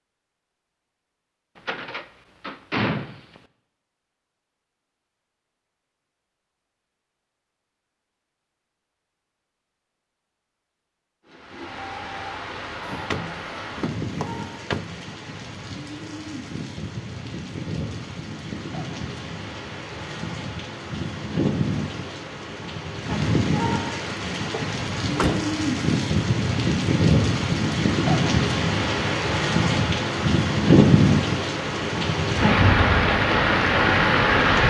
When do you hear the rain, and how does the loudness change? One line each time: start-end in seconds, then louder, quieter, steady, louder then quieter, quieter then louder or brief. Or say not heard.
11.2-34.6 louder.